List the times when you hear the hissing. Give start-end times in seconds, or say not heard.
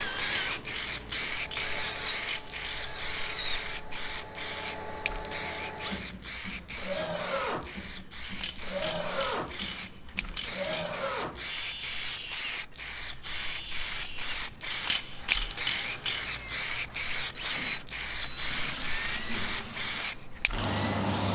0.0-21.3.